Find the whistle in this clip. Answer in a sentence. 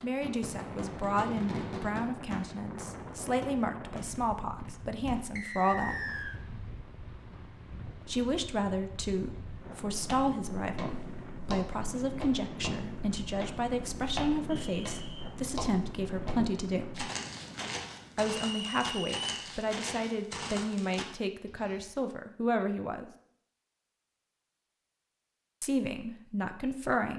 You can hear the whistle from 5.3 to 6.3 s, from 14.4 to 15.3 s and from 18.4 to 19.2 s.